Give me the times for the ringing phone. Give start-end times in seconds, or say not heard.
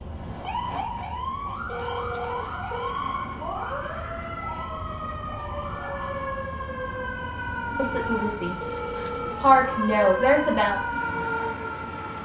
1.6-3.0, 8.6-9.6.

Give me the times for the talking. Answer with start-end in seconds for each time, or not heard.
7.8-10.8.